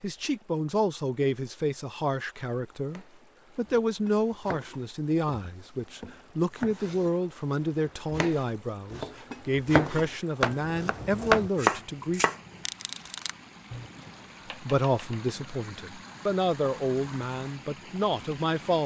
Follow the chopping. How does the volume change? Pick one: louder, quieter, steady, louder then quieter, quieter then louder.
louder then quieter.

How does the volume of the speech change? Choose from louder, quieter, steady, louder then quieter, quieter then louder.
steady.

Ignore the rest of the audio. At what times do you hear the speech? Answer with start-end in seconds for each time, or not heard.
0.0-12.2, 14.6-18.8.